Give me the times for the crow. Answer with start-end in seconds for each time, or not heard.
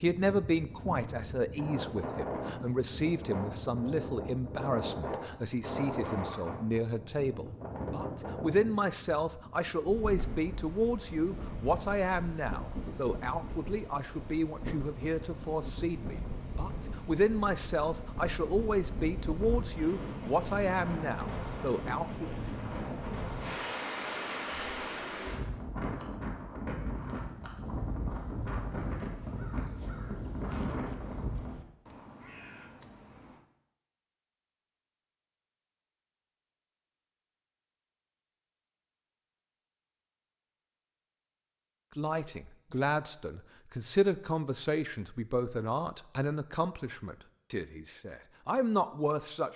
28.1-33.5.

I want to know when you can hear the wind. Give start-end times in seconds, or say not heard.
0.1-31.6.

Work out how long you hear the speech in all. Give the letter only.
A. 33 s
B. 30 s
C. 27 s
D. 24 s
B.